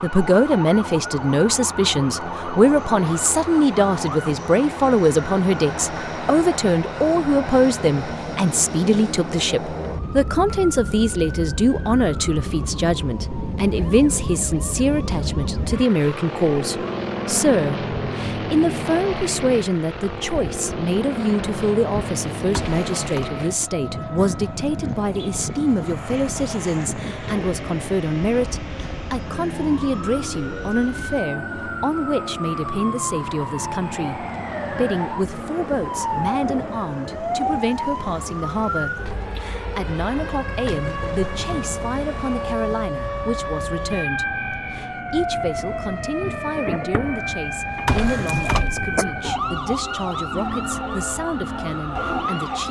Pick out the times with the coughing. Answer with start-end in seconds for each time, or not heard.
22.5-23.3, 47.9-49.0.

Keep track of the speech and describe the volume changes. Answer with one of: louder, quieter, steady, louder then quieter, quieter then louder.
quieter.